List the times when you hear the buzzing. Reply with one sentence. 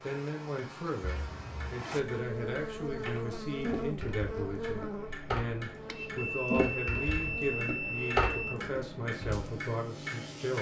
You can hear the buzzing from 0.0 to 10.5 s.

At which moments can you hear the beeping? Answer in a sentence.
You can hear the beeping from 1.0 to 1.9 s and from 5.8 to 8.6 s.